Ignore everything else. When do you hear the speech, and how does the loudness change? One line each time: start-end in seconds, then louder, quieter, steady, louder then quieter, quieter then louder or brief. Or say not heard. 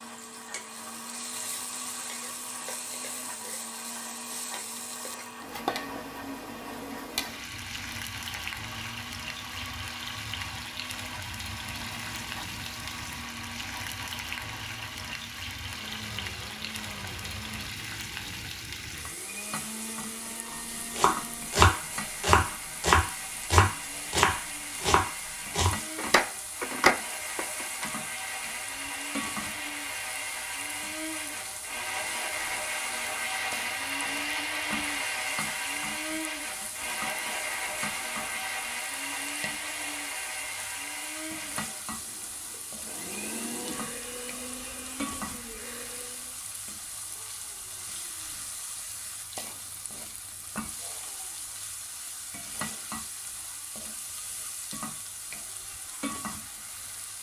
not heard.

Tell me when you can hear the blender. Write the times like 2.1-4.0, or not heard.
0.0-46.4.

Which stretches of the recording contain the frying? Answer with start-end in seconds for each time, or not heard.
0.0-57.1.